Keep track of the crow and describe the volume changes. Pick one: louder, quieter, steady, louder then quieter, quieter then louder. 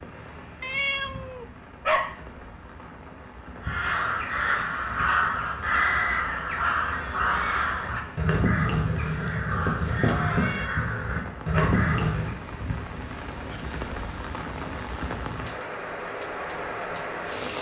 steady.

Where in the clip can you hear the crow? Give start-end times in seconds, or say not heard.
3.6-12.4.